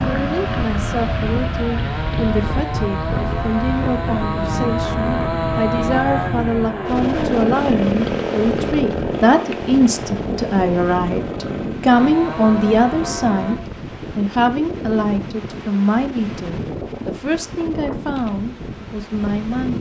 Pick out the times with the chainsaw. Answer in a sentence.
You can hear the chainsaw from 0.0 to 13.7 s.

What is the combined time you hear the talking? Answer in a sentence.
The talking can be heard for 20 seconds in total.